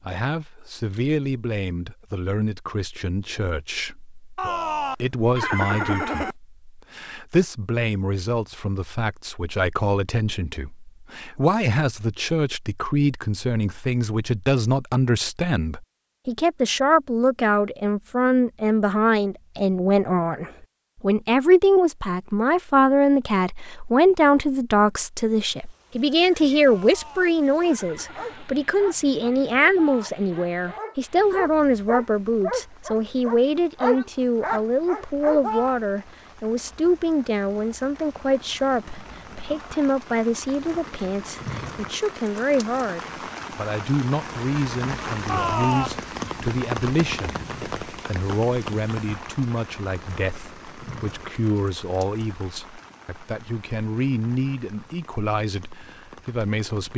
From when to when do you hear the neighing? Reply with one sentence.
You can hear the neighing from 4.3 to 6.3 s, from 26.6 to 28.6 s and from 45.2 to 46.4 s.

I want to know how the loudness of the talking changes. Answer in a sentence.
The loudness of the talking goes up, then down.